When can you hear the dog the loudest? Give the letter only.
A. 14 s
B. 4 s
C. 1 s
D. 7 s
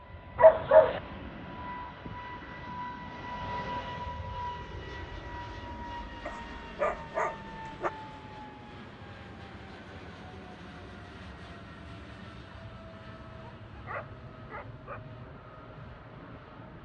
C.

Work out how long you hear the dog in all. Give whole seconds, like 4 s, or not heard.
4 s.